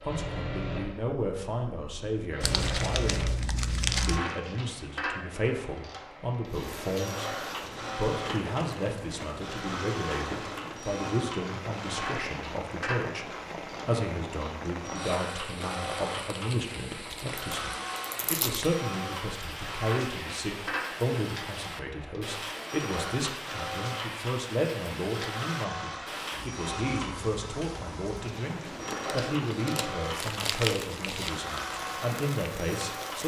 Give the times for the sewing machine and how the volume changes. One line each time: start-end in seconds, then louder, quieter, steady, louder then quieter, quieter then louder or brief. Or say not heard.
0.0-33.2 steady.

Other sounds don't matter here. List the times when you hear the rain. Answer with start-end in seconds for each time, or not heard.
6.5-33.2.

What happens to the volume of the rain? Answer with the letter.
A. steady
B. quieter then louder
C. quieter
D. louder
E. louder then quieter
A.